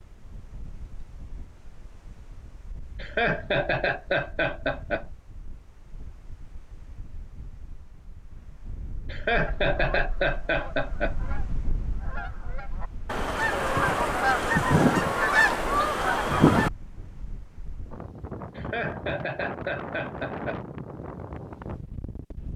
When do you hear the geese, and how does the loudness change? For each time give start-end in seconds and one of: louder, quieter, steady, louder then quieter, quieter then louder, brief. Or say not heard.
9.3-16.7 louder.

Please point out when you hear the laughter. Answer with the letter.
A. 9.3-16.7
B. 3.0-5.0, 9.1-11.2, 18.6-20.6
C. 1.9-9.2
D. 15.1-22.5
B.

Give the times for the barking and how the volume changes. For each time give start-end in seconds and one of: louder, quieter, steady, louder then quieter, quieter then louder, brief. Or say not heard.
not heard.